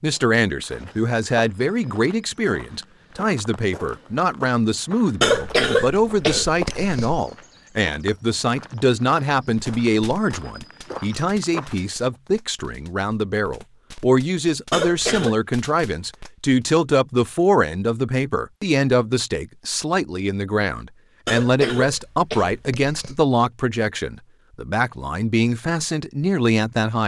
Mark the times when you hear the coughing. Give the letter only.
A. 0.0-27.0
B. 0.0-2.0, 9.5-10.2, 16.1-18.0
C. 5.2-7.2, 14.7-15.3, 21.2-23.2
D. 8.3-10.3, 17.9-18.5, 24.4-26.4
C.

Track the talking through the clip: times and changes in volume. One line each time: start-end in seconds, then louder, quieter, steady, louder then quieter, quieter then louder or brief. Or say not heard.
0.0-27.0 steady.